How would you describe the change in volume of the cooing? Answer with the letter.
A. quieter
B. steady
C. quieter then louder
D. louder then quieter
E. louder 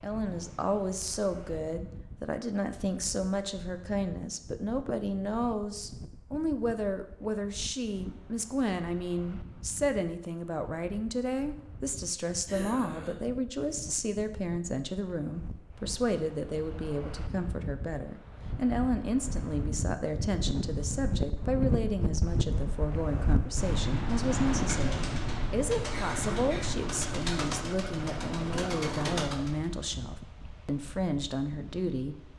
E.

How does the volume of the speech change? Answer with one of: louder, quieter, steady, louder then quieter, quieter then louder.
steady.